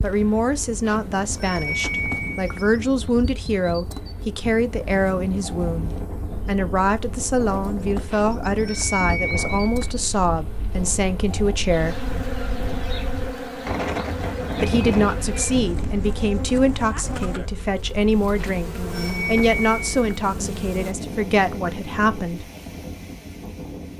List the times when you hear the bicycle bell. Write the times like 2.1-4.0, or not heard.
0.8-2.7, 8.1-9.9, 18.4-20.1.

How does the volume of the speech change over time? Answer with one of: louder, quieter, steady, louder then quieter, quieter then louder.
steady.